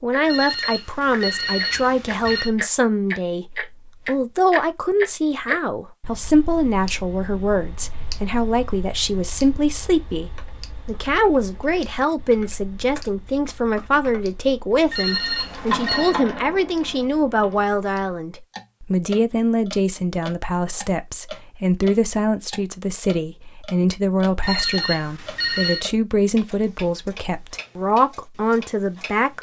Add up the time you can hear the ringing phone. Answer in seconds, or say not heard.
5 s.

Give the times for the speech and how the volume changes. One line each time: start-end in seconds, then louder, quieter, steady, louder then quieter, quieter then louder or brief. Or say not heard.
0.0-29.3 steady.